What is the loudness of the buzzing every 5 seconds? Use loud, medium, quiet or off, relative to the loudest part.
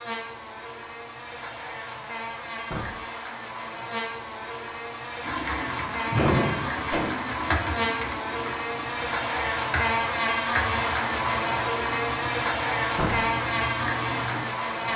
medium, loud, loud.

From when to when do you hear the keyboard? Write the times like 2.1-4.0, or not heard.
5.2-14.4.